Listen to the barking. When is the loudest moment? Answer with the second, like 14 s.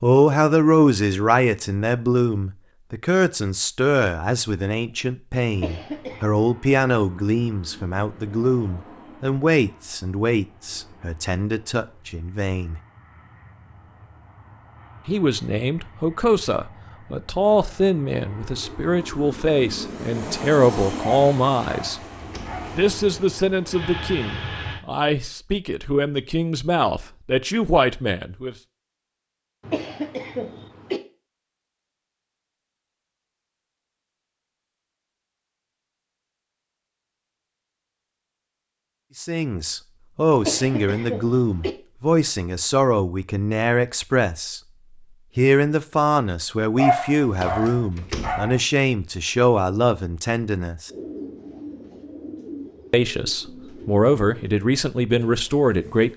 47 s.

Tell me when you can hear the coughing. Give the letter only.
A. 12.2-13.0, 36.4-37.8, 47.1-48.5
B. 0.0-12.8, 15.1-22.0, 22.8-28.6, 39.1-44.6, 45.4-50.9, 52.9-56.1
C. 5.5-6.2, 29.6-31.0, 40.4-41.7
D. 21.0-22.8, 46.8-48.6
C.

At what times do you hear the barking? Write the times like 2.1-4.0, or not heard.
21.0-22.8, 46.8-48.6.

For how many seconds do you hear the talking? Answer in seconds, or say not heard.
40 s.